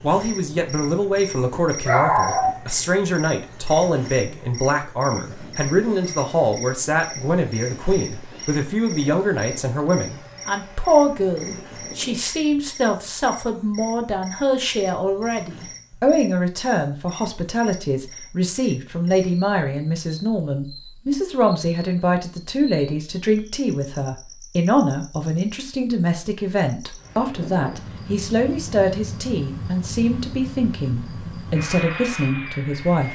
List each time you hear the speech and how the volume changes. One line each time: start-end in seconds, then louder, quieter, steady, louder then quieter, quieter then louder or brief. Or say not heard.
0.0-33.0 steady.